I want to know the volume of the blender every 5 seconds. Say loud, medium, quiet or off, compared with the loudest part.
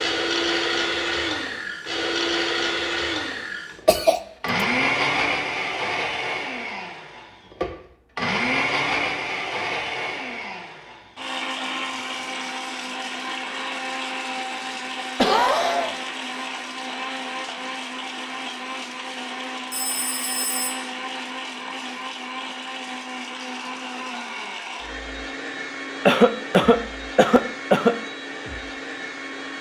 loud, loud, medium, medium, medium, medium.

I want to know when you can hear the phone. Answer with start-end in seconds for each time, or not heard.
19.7-20.8.